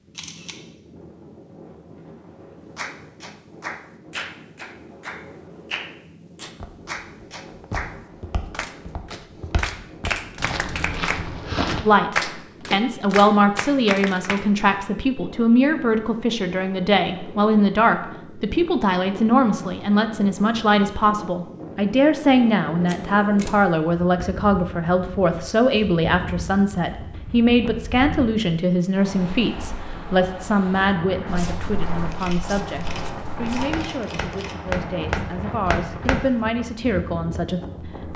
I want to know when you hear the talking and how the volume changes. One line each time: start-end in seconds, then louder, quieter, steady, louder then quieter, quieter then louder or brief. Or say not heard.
11.8-38.1 quieter.